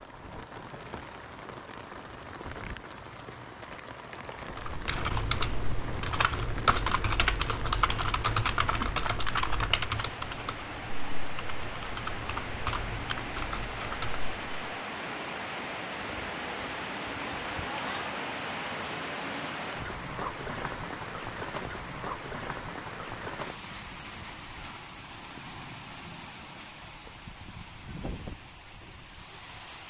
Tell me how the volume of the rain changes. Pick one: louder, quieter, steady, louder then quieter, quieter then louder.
louder then quieter.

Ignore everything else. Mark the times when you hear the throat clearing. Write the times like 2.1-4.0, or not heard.
not heard.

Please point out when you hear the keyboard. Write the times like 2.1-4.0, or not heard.
4.5-14.5.